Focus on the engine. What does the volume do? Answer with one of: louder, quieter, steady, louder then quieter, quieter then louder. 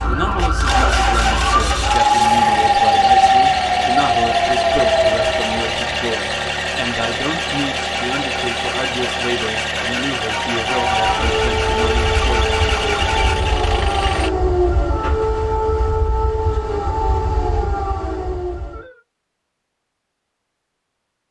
steady.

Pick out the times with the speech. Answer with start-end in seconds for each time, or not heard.
0.0-12.6.